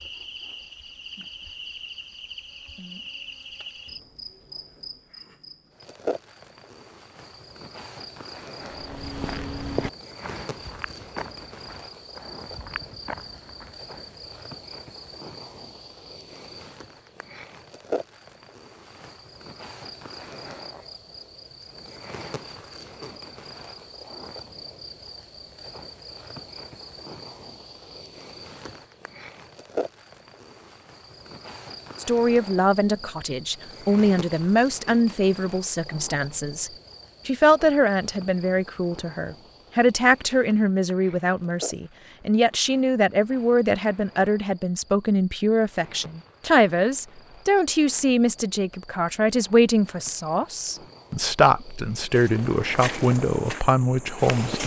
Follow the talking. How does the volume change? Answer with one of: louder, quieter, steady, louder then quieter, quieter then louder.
steady.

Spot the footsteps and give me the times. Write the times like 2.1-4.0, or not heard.
8.6-14.3, 52.1-54.6.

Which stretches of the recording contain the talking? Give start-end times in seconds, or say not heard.
32.0-54.6.